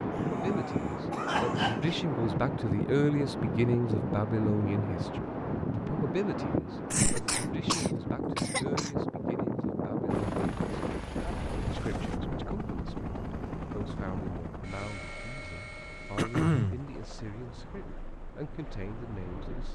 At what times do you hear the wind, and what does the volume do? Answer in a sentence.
The wind can be heard from 0.0 to 19.6 s, getting quieter.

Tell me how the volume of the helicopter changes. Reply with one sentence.
The loudness of the helicopter goes down.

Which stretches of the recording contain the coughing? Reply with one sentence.
The coughing can be heard from 0.1 to 1.9 s, from 6.9 to 8.9 s and from 16.1 to 16.9 s.